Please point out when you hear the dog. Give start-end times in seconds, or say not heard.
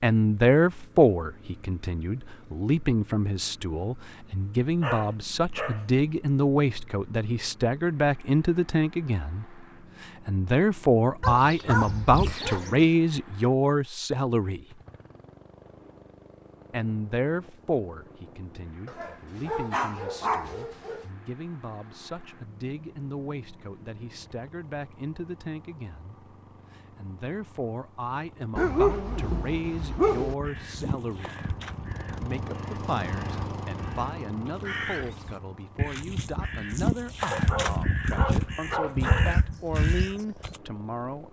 4.8-6.0, 11.2-12.9, 18.9-21.1, 28.6-30.4, 37.3-39.5.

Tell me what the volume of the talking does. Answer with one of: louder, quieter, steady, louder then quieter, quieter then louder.
quieter.